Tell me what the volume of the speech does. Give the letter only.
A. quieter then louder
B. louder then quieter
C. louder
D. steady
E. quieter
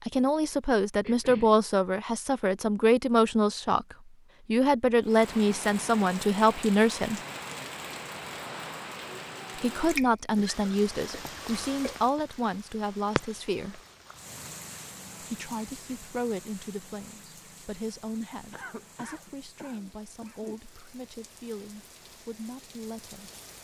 E.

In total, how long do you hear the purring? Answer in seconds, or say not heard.
not heard.